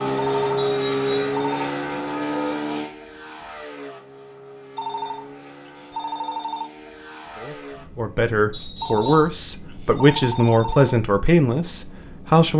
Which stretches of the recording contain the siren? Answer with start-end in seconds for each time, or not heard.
not heard.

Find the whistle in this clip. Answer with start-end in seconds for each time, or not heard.
0.6-1.4, 8.5-9.3.